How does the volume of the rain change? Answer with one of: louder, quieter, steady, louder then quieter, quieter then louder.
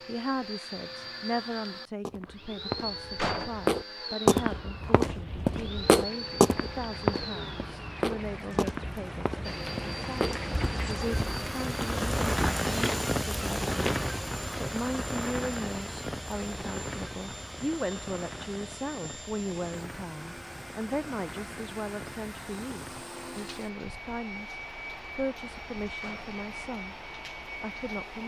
louder then quieter.